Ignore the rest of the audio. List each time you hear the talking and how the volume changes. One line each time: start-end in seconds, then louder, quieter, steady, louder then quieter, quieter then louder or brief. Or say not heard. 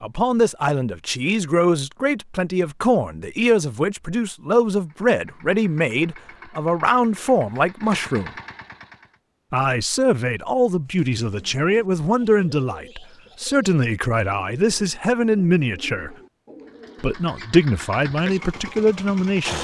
0.0-8.3 steady
9.5-16.1 steady
17.0-19.5 brief.